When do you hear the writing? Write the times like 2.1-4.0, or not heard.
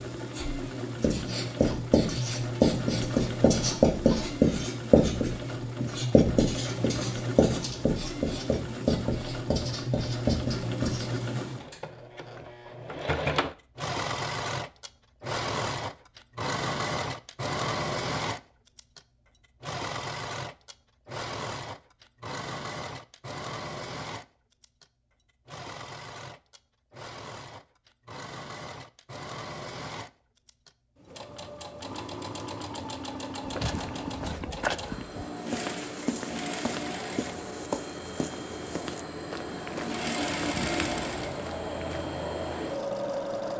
0.3-11.8.